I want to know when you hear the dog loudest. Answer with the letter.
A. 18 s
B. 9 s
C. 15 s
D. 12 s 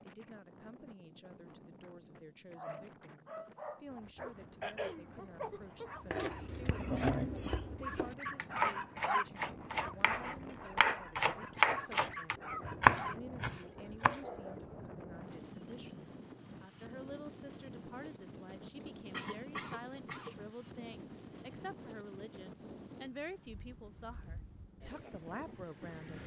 B.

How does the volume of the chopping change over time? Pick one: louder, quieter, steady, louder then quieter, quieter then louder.
louder.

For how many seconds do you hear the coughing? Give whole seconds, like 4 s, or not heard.
4 s.